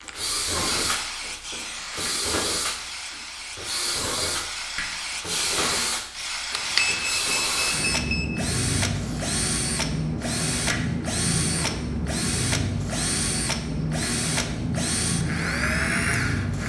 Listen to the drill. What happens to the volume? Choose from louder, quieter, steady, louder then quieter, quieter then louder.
steady.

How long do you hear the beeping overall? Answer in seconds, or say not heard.
2 s.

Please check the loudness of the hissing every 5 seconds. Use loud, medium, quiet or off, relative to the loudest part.
medium, loud, loud, loud.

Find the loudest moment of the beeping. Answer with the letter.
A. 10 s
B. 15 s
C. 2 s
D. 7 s
D.